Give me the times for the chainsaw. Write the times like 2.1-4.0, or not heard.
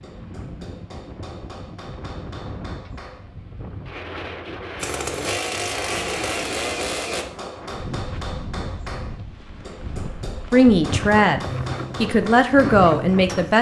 4.8-7.2.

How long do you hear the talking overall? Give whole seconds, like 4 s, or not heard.
3 s.